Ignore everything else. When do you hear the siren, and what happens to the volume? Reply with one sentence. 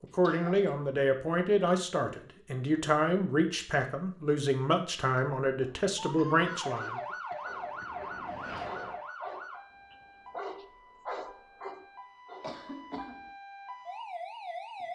The siren can be heard from 6.0 to 14.9 s, getting quieter then louder.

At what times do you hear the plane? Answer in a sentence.
The plane can be heard from 7.4 to 9.0 s.